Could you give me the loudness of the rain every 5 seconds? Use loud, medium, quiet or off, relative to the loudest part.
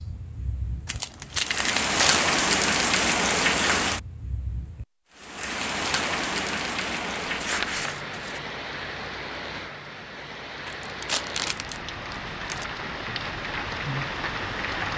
loud, medium, medium.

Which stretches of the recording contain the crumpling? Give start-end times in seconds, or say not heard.
0.8-2.3, 7.2-8.4, 10.7-12.7.